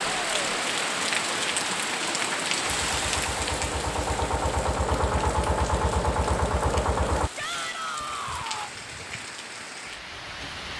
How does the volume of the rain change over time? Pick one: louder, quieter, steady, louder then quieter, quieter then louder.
quieter.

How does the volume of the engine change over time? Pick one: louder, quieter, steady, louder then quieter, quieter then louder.
louder.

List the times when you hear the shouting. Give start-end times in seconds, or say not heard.
0.1-0.6, 7.3-8.7.